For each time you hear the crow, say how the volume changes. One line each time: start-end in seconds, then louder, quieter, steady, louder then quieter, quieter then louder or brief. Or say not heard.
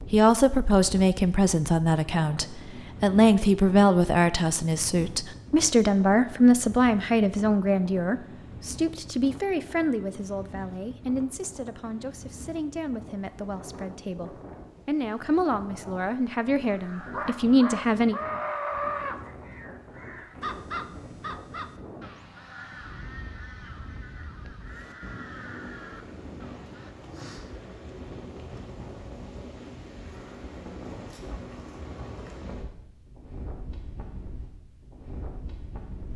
16.7-26.9 quieter.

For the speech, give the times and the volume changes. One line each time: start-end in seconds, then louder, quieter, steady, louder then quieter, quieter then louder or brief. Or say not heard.
0.1-18.1 quieter then louder.